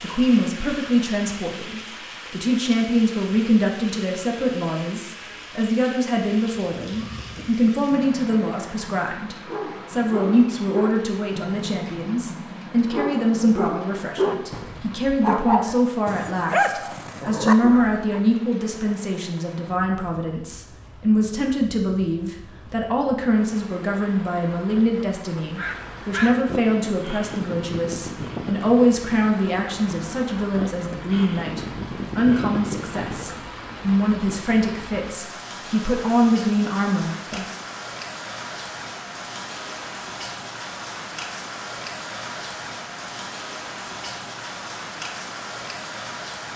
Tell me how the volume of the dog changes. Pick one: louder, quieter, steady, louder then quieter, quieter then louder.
louder.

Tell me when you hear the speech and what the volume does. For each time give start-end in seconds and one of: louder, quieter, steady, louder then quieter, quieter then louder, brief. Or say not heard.
0.0-37.5 steady.